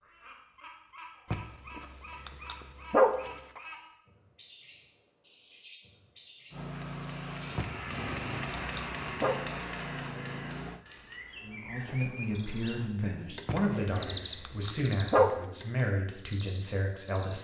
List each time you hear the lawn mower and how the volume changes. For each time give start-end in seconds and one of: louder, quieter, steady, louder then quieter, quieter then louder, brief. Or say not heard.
6.5-10.8 steady.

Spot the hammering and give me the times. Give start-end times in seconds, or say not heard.
6.7-12.2.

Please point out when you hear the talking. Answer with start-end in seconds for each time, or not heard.
11.4-17.3.